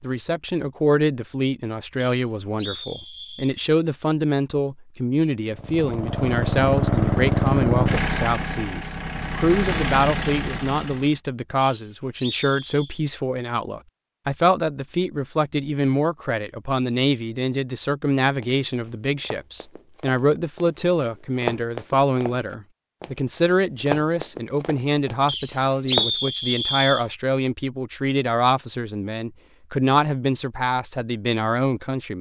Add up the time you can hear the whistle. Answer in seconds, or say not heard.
5 s.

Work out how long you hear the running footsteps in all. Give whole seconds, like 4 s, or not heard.
8 s.